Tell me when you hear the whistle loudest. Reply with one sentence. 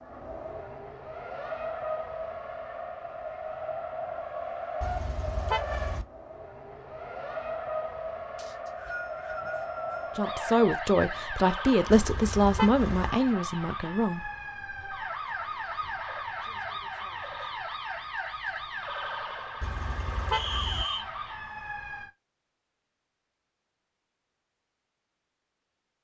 The volume of the whistle peaks at 21 seconds.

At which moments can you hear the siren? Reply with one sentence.
You can hear the siren from 10.2 to 22.1 s.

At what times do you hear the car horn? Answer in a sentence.
The car horn can be heard from 4.8 to 6.0 s, from 11.8 to 13.1 s and from 19.6 to 20.9 s.